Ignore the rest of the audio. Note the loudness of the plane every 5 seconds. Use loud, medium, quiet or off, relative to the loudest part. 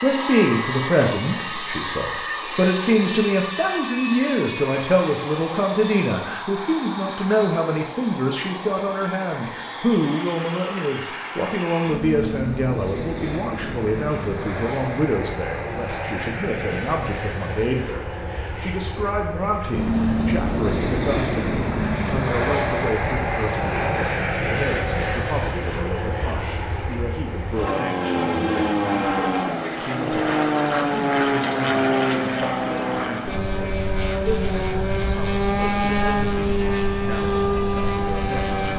medium, medium, medium, medium, loud, loud, loud, loud.